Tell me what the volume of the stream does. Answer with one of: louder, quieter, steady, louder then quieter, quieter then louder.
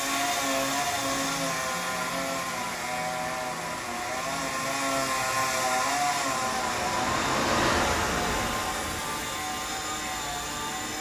louder then quieter.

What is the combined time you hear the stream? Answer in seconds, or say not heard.
11 s.